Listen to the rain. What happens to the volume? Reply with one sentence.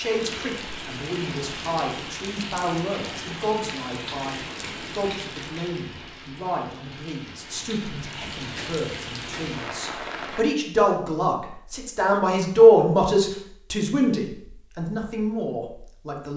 The loudness of the rain goes down, then up.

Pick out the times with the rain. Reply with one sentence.
You can hear the rain from 0.0 to 10.4 s.